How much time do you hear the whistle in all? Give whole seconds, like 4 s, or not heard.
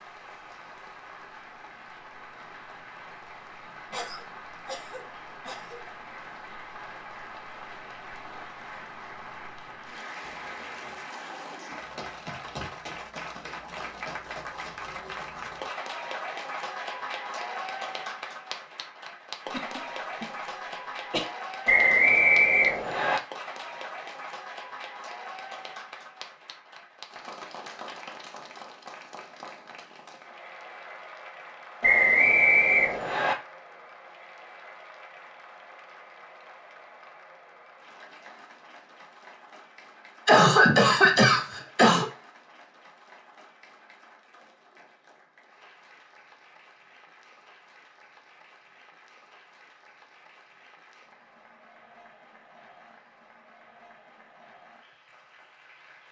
3 s.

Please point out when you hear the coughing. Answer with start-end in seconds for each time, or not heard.
3.9-5.8, 19.5-21.2, 40.2-42.1.